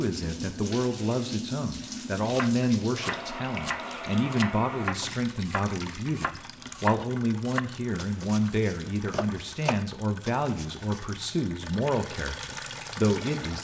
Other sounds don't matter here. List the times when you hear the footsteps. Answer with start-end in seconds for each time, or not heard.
not heard.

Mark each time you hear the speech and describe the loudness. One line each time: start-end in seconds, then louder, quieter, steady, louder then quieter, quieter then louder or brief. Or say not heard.
0.0-13.5 steady.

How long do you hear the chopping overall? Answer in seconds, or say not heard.
9 s.